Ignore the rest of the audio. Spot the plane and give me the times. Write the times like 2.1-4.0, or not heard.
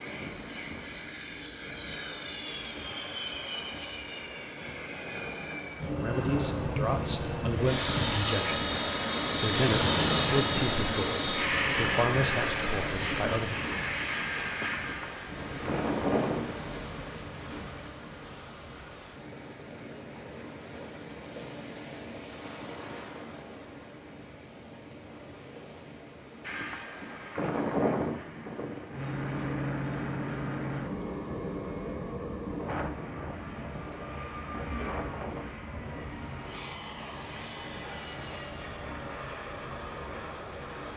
0.0-16.8, 26.4-40.9.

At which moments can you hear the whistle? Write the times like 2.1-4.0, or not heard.
not heard.